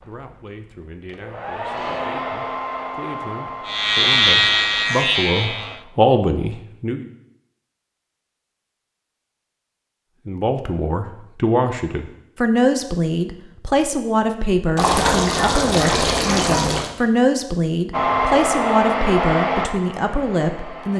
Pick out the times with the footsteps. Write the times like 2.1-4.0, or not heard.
not heard.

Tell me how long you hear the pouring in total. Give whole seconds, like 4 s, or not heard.
2 s.